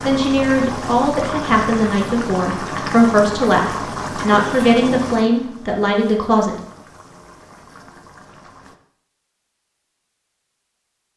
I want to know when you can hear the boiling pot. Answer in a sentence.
You can hear the boiling pot from 0.0 to 8.8 s.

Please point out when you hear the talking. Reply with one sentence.
The talking can be heard from 0.0 to 6.5 s.